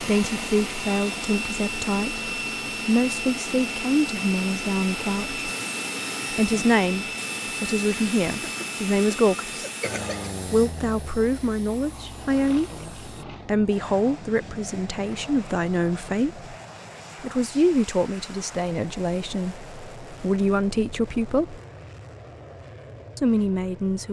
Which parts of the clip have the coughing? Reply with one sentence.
You can hear the coughing from 8.2 to 10.3 s.